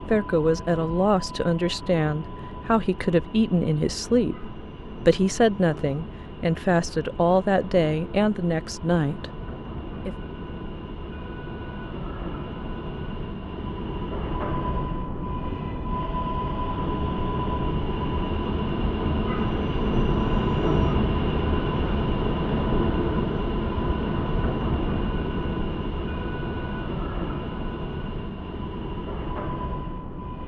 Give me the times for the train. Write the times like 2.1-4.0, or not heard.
0.0-30.4.